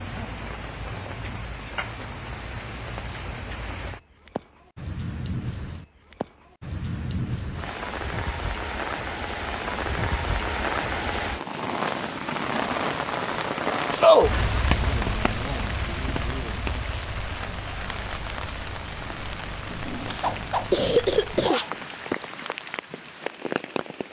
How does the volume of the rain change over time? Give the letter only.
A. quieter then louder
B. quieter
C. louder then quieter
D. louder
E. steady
C.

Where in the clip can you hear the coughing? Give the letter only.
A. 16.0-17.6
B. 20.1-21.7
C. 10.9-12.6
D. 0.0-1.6
B.